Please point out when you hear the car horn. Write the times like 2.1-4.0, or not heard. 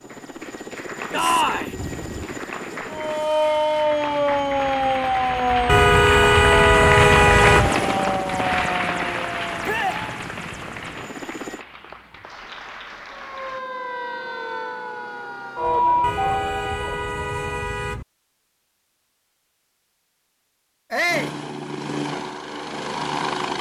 5.7-7.7, 16.0-18.1.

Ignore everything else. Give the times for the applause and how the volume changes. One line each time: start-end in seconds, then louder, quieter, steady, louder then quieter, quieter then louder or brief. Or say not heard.
0.0-13.6 louder then quieter.